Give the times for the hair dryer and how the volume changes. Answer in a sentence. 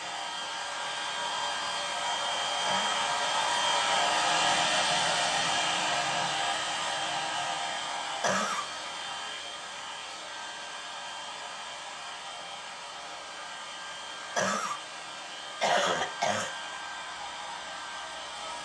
You can hear the hair dryer from 0.0 to 18.6 s, getting quieter.